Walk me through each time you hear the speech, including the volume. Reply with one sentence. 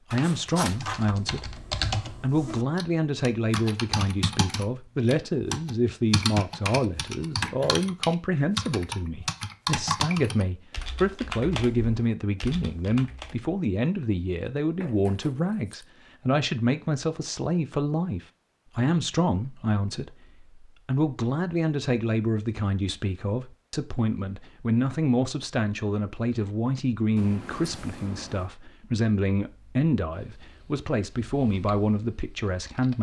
The speech can be heard from 0.1 to 32.9 s, at a steady volume.